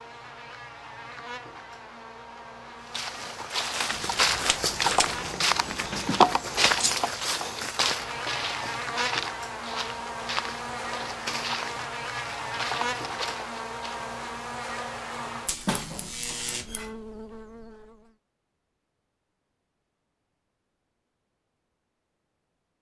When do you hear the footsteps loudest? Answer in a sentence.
The loudest moment of the footsteps is at 6 seconds.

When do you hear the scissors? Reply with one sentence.
The scissors can be heard from 3.9 to 6.0 s and from 15.4 to 16.9 s.